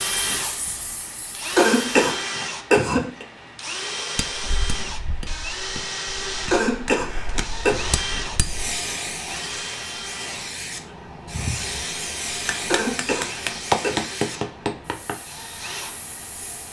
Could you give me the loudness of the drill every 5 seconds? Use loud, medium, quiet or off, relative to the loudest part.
loud, loud, medium, medium.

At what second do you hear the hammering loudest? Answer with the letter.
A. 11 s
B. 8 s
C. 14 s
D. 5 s
C.